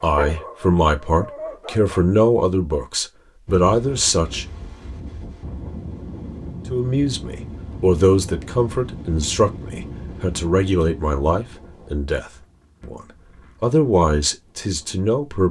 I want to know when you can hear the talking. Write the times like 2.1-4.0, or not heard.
0.0-4.5, 6.7-15.4.